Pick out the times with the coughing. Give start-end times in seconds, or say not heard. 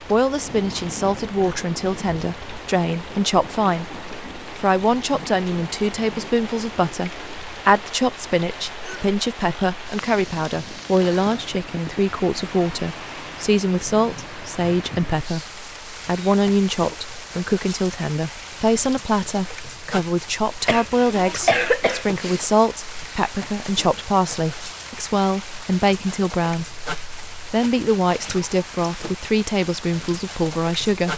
20.6-22.4.